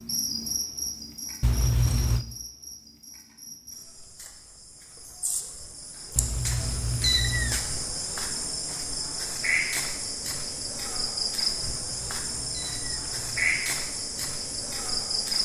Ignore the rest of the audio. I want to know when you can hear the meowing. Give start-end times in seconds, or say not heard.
1.4-2.2, 6.2-7.7, 11.9-13.5.